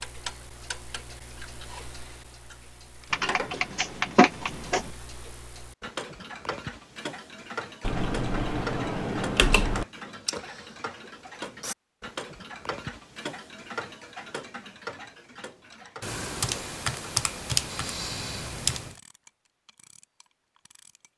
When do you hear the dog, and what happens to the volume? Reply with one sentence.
You can't hear the dog here.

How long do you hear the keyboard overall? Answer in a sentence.
You can hear the keyboard for 7 seconds altogether.